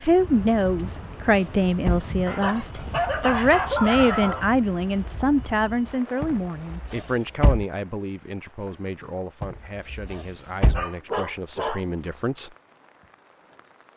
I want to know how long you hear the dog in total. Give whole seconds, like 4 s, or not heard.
4 s.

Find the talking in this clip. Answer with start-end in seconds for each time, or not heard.
0.0-12.6.